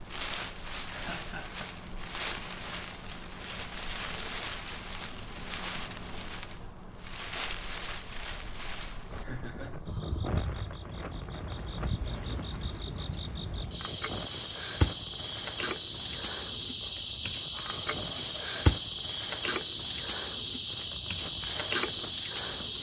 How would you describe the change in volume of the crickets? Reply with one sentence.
The volume of the crickets goes up.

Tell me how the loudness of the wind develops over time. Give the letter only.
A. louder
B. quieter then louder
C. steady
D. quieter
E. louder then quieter
D.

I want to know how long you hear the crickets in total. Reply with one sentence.
You can hear the crickets for 23 seconds altogether.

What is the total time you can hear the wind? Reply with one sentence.
The wind can be heard for 23 seconds in total.